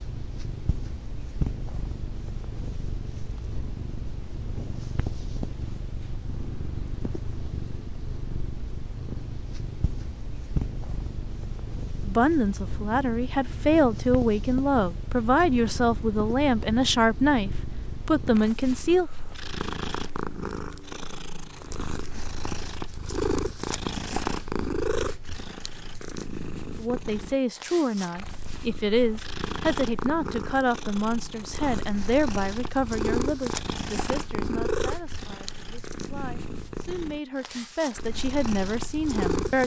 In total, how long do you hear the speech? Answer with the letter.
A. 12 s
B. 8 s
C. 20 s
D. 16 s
C.